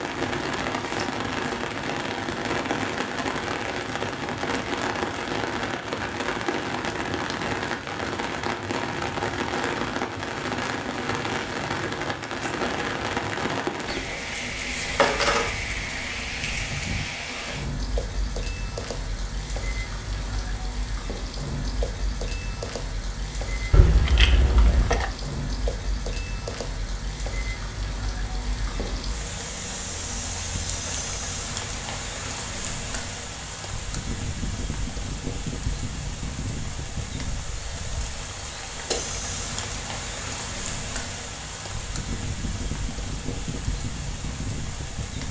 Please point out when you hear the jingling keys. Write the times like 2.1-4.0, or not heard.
14.1-15.5, 23.7-25.1.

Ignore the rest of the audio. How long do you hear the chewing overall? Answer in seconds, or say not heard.
not heard.